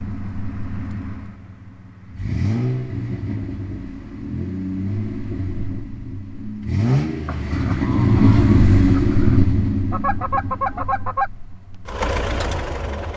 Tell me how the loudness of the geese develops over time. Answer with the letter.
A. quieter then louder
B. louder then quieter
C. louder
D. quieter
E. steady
C.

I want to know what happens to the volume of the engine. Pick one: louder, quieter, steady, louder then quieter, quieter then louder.
louder then quieter.